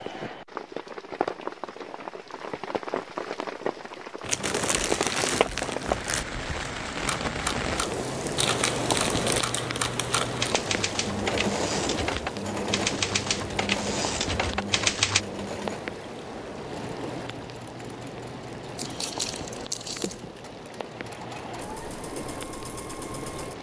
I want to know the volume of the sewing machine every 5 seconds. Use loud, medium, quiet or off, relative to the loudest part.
off, off, loud, medium, medium.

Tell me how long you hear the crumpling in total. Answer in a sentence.
You can hear the crumpling for 6 seconds altogether.